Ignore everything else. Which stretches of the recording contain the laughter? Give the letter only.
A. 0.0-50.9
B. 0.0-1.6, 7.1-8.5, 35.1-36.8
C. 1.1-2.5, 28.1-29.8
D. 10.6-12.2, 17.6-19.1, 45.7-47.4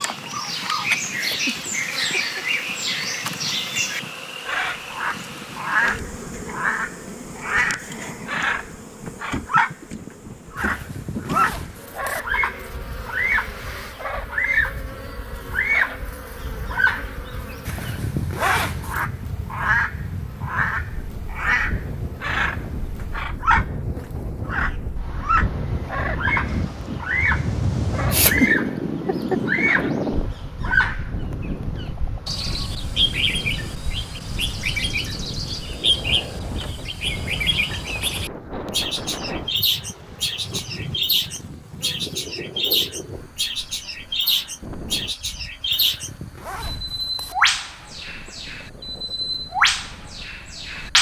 C.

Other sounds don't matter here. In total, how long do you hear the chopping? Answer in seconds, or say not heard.
not heard.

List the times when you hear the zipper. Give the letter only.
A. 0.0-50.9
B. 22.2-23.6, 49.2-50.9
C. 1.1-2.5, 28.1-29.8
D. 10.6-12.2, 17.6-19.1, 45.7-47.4
D.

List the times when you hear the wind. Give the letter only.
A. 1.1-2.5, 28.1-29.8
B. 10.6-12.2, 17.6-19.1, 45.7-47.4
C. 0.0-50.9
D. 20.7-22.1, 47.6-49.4
C.